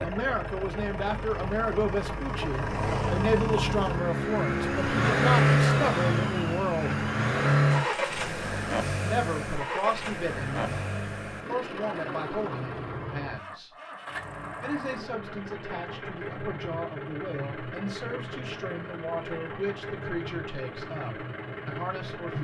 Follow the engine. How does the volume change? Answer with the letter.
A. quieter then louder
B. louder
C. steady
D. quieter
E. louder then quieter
E.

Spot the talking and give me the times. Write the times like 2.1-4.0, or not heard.
0.0-7.0, 9.0-13.7, 14.6-22.3.